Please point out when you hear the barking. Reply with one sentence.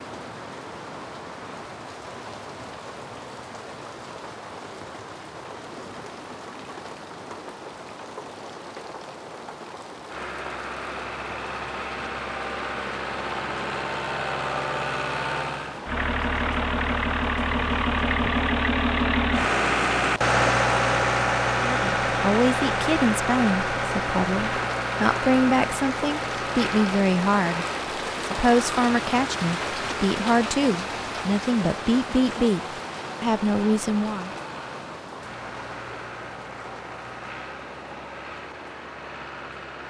You can't hear the barking here.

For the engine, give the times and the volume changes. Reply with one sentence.
You can hear the engine from 10.1 to 39.8 s, getting louder then quieter.